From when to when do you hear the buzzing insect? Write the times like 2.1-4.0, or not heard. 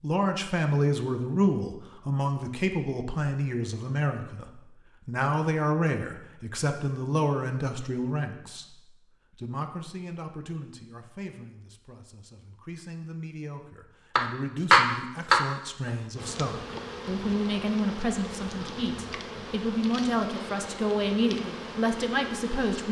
16.1-22.8.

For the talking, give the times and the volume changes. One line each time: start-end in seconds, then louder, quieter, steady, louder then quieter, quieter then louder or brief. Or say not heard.
0.0-22.8 quieter then louder.